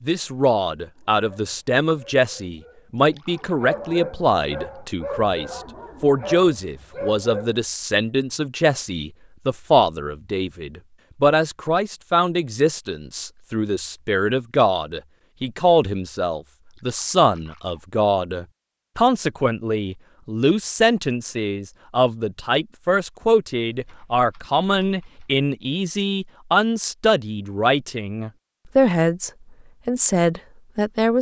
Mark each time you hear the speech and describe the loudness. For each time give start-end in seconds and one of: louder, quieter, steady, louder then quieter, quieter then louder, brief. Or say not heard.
0.0-31.1 steady.